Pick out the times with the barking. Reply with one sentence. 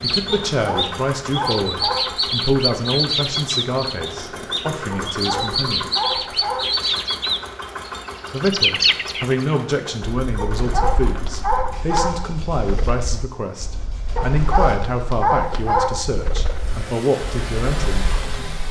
The barking can be heard from 0.3 to 2.2 s, from 4.9 to 6.7 s, from 10.3 to 12.3 s and from 14.2 to 16.1 s.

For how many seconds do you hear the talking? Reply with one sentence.
You can hear the talking for 16 seconds altogether.